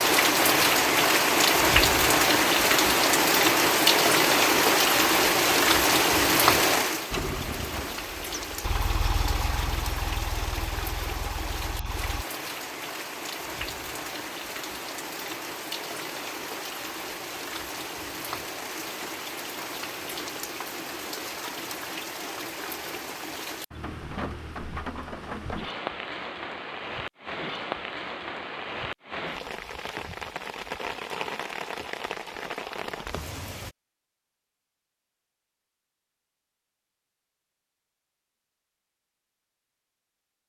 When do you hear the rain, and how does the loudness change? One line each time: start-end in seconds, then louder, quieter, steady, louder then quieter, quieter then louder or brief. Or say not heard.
0.0-33.8 quieter.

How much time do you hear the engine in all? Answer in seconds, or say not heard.
5 s.